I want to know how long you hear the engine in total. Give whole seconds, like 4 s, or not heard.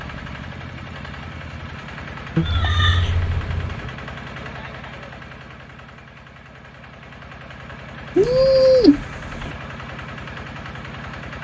11 s.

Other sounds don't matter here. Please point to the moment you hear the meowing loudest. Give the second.
9 s.